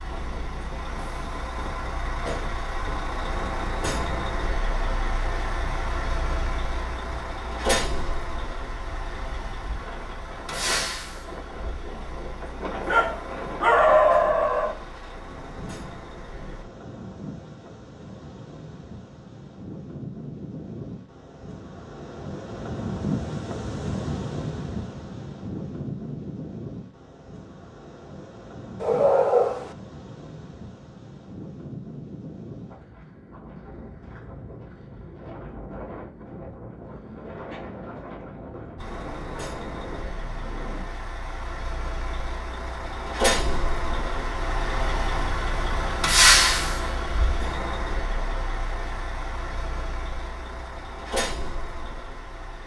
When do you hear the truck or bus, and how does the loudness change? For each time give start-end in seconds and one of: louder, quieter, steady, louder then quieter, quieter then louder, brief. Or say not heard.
0.0-16.6 quieter
38.8-52.6 louder then quieter.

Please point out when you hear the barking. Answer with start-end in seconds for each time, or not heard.
12.8-14.8, 28.8-29.7.